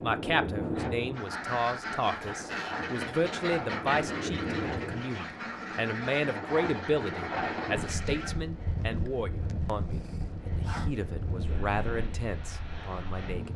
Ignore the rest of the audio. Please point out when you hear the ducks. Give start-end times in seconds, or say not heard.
1.1-8.3.